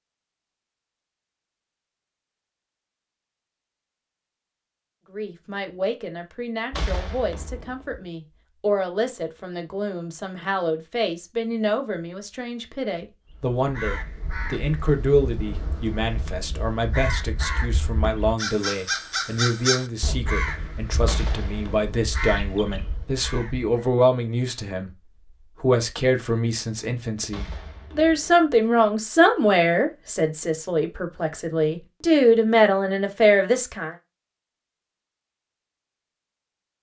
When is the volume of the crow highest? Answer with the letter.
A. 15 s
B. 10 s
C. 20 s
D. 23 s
C.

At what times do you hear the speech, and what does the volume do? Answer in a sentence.
You can hear the speech from 5.1 to 34.0 s, getting louder.